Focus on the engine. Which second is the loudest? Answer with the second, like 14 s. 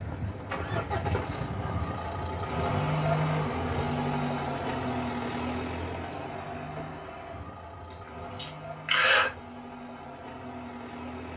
3 s.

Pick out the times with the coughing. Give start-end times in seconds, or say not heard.
7.9-9.3.